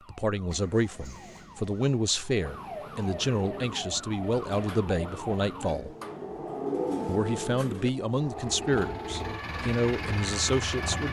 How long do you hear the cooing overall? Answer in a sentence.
The cooing can be heard for 6 seconds in total.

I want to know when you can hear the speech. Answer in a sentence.
You can hear the speech from 0.1 to 6.0 s and from 7.0 to 11.0 s.